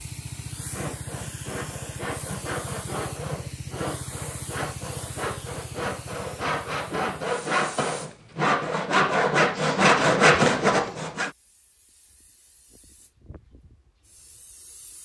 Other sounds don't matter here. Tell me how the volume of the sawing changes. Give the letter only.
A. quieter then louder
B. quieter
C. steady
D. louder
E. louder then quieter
D.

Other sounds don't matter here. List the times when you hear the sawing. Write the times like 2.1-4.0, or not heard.
0.6-11.3.